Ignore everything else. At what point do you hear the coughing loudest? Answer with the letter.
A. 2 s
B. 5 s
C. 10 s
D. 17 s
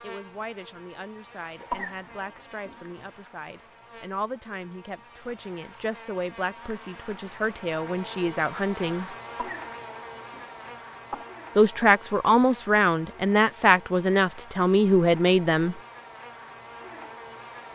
A.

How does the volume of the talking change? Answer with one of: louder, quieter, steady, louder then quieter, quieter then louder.
louder.